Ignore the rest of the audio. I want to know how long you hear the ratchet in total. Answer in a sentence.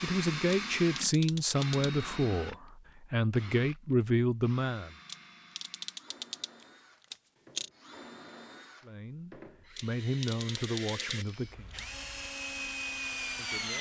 You can hear the ratchet for 6 seconds altogether.